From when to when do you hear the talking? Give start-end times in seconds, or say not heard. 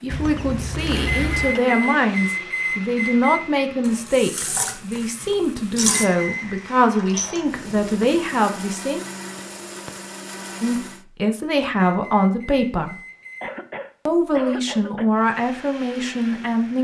0.0-9.0, 10.6-12.9, 14.1-16.7.